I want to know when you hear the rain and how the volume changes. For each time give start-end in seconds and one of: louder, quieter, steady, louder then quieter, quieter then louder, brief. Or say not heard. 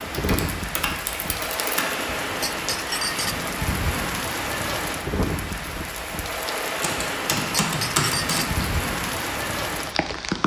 0.0-10.4 steady.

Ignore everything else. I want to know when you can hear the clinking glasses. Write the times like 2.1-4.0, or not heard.
2.3-3.4, 7.7-8.6.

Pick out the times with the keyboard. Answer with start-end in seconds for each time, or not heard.
0.1-1.9, 6.8-8.7.